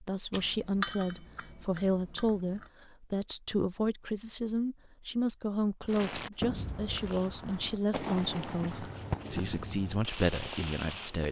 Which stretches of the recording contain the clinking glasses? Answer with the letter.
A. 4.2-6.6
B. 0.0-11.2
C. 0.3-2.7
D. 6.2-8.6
C.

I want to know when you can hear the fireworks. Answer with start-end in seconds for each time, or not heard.
5.8-11.2.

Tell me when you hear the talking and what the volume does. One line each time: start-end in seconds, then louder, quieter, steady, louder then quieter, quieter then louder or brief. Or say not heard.
0.0-11.2 steady.